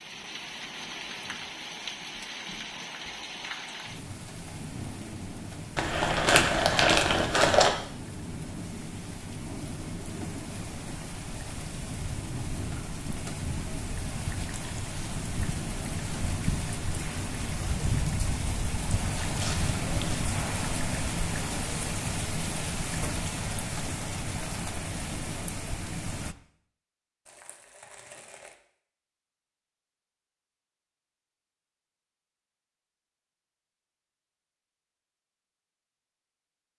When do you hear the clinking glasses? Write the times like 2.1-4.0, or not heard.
not heard.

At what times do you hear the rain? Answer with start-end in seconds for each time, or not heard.
0.0-26.4.